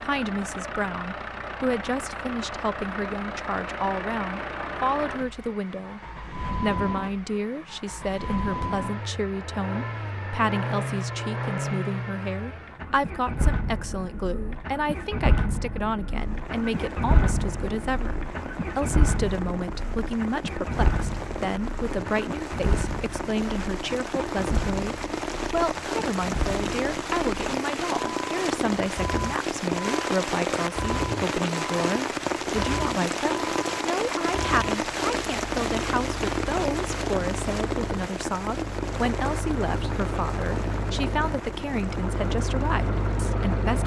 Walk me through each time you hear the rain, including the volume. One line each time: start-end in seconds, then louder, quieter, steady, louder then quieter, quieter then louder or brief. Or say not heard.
16.1-43.8 louder then quieter.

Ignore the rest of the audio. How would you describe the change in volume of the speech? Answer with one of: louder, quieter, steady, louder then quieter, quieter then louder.
steady.